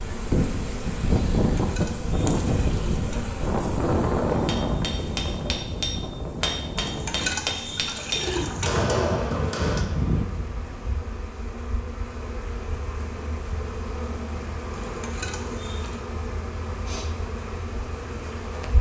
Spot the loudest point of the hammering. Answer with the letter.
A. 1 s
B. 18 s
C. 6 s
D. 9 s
D.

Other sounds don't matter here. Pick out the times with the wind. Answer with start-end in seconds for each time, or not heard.
0.0-10.2.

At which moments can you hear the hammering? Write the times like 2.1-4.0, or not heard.
4.3-9.8.